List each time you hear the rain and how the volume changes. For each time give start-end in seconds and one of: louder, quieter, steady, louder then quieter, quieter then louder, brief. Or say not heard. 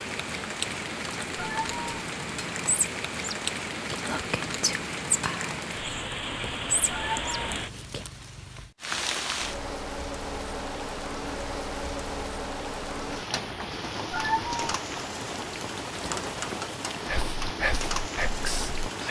0.0-19.0 steady.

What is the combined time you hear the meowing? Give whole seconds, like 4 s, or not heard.
2 s.